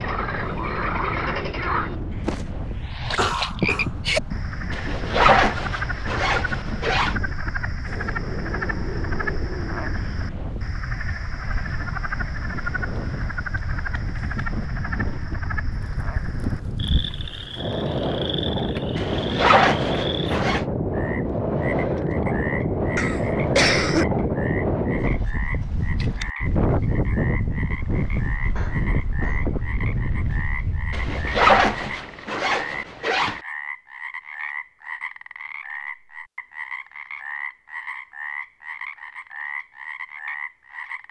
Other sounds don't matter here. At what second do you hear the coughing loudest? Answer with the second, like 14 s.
24 s.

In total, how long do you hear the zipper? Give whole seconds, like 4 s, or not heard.
7 s.